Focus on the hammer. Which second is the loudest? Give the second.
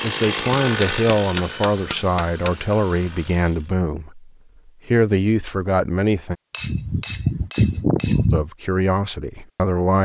8 s.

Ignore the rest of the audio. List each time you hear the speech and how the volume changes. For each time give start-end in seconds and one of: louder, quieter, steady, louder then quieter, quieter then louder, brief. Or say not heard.
0.0-6.3 quieter then louder
8.3-10.0 brief.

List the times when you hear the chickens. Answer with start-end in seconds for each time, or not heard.
not heard.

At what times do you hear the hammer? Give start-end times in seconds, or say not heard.
0.3-2.8, 6.5-8.4.